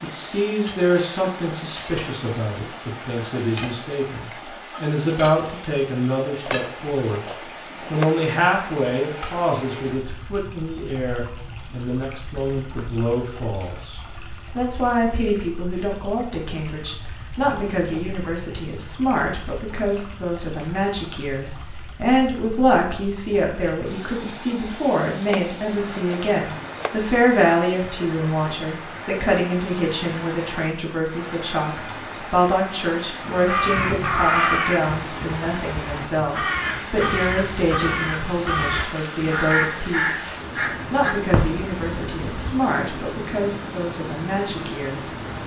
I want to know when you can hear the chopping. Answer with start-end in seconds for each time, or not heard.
6.5-8.2, 25.2-27.1.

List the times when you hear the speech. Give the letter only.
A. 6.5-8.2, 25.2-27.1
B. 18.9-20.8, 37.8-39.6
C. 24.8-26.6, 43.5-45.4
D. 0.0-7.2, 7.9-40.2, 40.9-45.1
D.